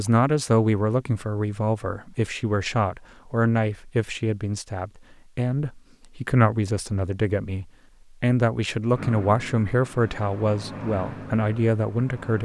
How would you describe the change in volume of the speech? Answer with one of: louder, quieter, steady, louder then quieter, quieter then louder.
steady.